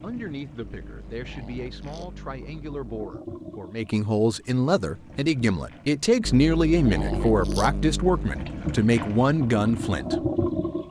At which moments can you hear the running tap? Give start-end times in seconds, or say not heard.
0.0-10.8.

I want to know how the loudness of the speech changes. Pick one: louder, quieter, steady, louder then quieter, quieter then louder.
louder.